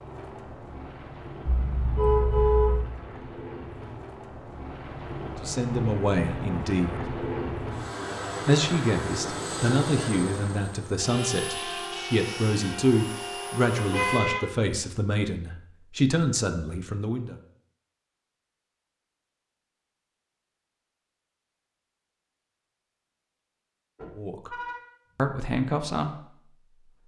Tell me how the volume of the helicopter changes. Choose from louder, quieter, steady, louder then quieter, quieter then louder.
louder.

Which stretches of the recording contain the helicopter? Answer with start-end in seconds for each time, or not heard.
0.0-14.2.